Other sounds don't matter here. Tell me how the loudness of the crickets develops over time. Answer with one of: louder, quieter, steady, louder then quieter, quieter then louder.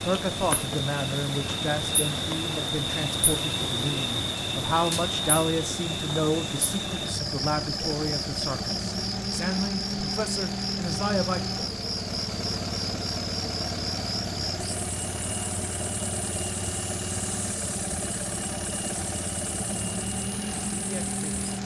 quieter.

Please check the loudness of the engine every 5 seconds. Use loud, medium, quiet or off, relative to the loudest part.
medium, loud, loud, loud, loud.